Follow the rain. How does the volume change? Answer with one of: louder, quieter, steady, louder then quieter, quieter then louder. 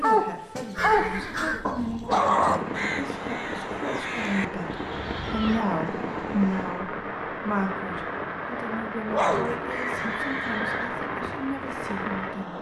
steady.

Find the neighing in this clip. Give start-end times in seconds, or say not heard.
0.8-2.0, 5.2-6.7, 9.7-10.9.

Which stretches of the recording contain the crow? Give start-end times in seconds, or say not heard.
0.0-5.7.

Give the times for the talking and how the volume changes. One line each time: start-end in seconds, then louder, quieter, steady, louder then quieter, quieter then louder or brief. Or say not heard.
0.0-12.5 louder then quieter.